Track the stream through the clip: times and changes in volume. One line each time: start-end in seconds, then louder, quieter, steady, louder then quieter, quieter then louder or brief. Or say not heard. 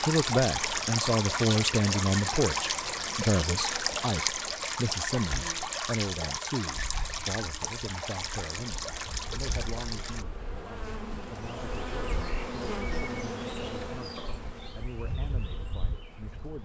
0.0-10.2 quieter.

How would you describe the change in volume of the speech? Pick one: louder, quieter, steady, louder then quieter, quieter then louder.
quieter.